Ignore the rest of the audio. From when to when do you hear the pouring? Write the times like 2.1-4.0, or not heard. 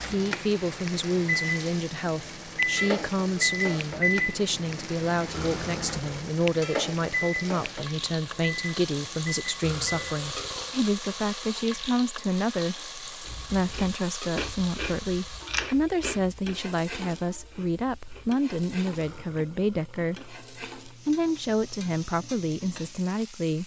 not heard.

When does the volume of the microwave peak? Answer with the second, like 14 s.
4 s.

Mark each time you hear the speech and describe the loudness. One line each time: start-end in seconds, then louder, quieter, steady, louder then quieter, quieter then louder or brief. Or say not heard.
0.1-23.6 steady.